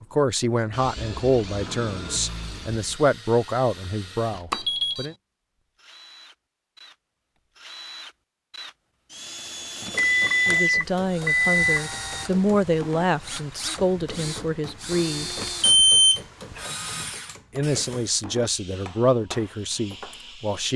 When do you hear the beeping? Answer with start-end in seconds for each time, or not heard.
4.5-5.0, 9.9-11.8, 15.6-16.2.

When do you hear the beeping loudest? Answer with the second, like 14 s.
16 s.